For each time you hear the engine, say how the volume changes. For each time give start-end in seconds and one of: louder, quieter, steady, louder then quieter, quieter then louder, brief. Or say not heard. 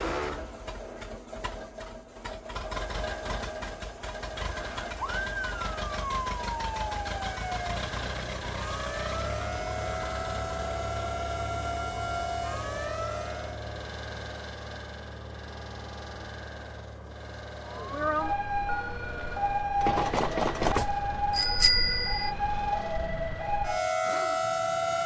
0.0-25.0 quieter.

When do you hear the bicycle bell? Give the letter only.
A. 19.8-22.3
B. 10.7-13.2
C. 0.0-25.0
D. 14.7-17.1
A.